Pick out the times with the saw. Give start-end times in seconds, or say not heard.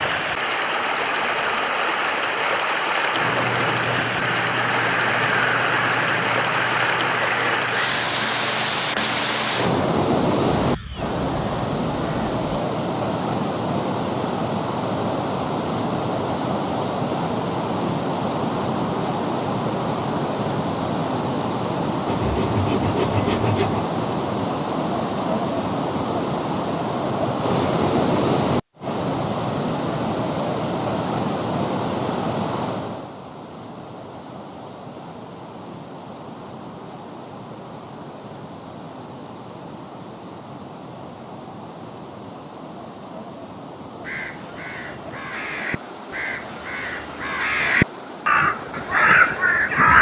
22.1-23.9.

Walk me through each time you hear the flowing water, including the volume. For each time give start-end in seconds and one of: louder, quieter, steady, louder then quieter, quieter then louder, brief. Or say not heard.
0.0-49.9 quieter.